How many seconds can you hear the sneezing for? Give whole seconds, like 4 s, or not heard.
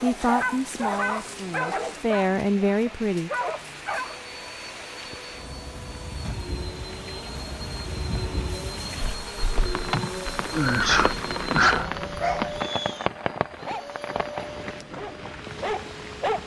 2 s.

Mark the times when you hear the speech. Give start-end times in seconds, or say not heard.
0.0-3.3.